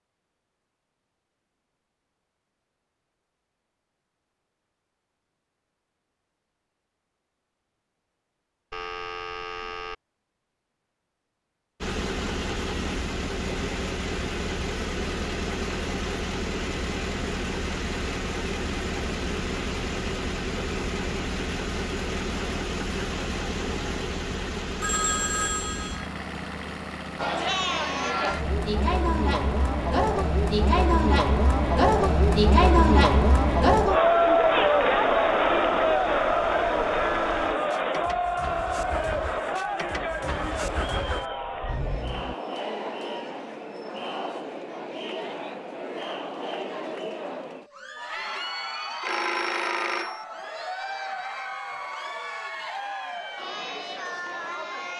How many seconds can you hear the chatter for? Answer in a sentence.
You can hear the chatter for 28 seconds altogether.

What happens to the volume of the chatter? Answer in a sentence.
The loudness of the chatter goes down.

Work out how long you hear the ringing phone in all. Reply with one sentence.
The ringing phone can be heard for 4 seconds in total.